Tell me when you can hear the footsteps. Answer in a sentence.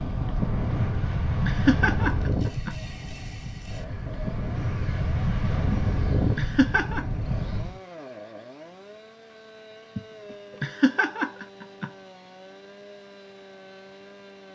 You can't hear the footsteps here.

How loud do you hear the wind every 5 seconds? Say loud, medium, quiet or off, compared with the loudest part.
loud, loud, off.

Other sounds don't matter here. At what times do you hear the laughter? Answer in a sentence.
You can hear the laughter from 0.8 to 2.8 s, from 5.7 to 7.0 s and from 9.9 to 11.9 s.